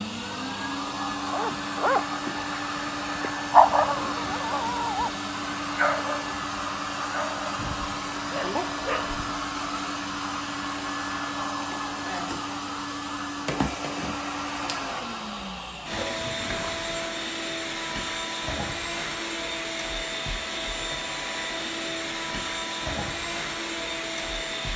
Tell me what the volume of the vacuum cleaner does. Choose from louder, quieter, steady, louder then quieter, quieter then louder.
steady.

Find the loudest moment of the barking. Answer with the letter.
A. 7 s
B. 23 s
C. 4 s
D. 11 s
C.